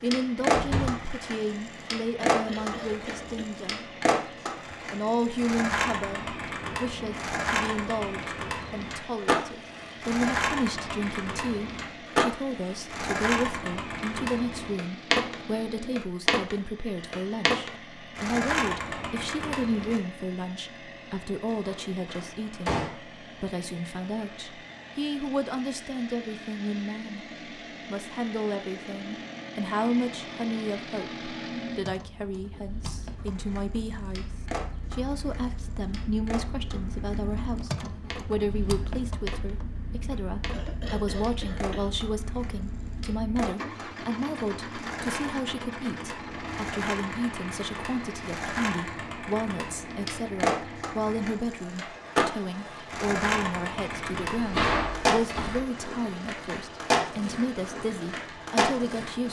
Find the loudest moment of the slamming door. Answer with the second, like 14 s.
55 s.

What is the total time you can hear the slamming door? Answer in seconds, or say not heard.
3 s.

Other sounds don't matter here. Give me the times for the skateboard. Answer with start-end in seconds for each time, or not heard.
0.1-20.0, 33.1-59.2.